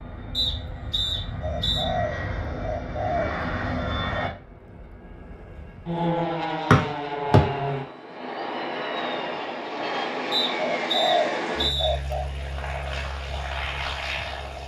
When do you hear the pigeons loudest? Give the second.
11 s.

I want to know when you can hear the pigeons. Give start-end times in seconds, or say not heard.
1.4-3.4, 10.6-12.3.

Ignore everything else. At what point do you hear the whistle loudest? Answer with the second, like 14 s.
7 s.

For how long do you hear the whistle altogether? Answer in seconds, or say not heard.
4 s.